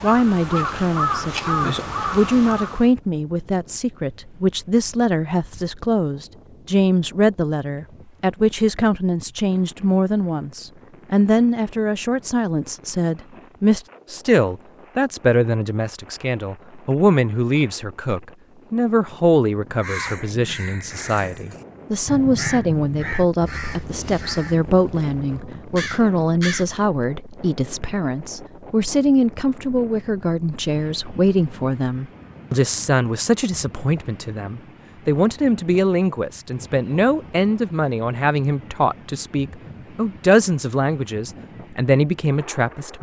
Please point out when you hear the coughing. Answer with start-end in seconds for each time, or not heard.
not heard.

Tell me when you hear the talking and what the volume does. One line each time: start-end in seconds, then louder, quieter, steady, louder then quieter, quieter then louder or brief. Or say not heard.
0.0-42.9 steady.